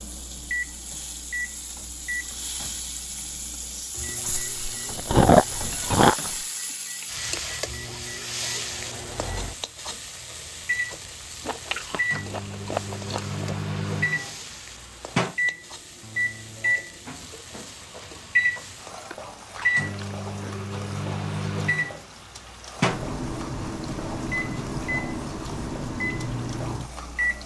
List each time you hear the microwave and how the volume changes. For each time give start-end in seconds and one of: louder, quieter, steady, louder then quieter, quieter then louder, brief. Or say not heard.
0.0-27.4 louder.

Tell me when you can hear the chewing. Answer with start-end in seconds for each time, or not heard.
4.0-6.3, 11.4-13.8, 19.1-20.7.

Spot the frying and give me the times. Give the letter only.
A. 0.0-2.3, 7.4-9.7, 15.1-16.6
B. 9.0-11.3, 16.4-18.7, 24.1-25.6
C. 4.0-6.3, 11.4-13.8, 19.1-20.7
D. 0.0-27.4
D.